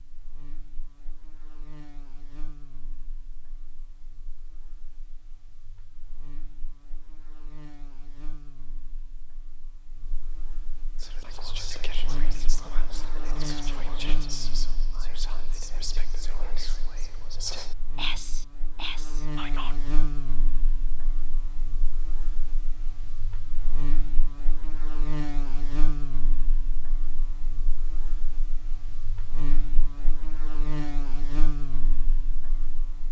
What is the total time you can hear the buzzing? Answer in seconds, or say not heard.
33 s.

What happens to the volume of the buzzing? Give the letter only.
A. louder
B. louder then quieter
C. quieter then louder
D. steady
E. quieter
A.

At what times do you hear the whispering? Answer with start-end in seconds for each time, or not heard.
10.9-19.8.